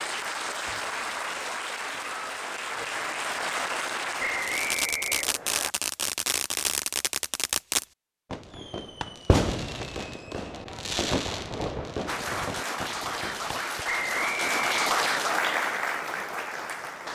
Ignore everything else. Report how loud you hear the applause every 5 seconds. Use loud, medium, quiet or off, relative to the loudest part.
loud, off, loud, loud.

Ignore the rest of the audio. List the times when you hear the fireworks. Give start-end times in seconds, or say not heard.
4.4-13.8.